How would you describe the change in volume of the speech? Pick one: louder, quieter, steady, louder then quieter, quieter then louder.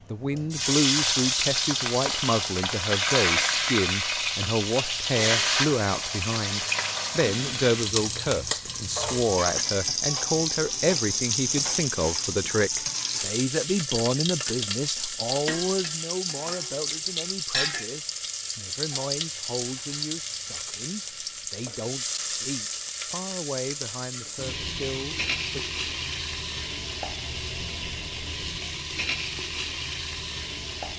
quieter.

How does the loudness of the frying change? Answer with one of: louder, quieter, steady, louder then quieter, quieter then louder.
quieter.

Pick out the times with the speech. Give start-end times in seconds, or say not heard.
0.1-25.6.